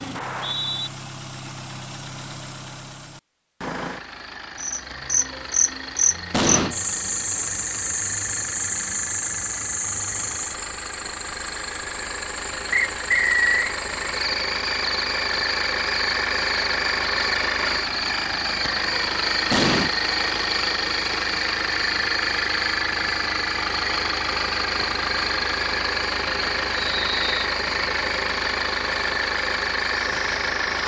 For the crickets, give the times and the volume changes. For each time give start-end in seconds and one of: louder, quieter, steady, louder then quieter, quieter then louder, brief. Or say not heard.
4.5-30.8 quieter.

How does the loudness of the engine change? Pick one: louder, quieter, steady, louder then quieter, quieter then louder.
louder.